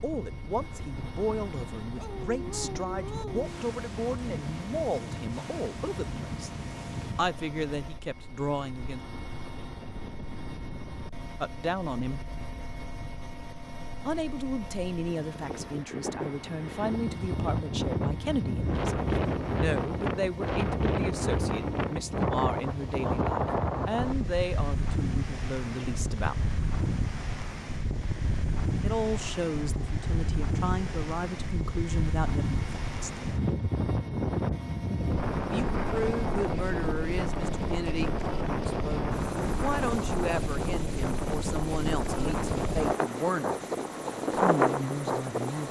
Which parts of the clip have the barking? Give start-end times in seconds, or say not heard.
1.9-3.5.